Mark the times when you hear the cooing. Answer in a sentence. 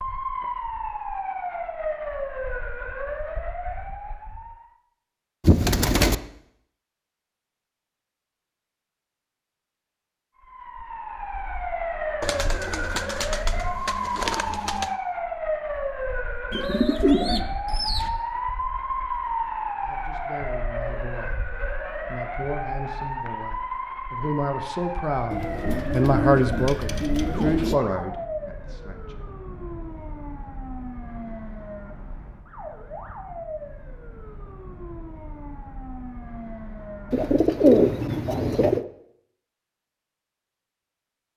The cooing can be heard from 5.4 to 6.2 s, from 12.2 to 14.9 s, from 16.5 to 18.1 s, from 25.3 to 27.8 s and from 37.1 to 38.9 s.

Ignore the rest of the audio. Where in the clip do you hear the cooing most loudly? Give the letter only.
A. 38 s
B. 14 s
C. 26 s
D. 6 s
A.